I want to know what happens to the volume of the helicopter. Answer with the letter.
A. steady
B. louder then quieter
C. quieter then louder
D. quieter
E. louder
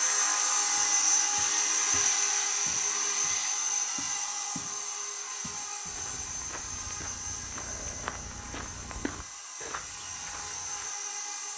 D.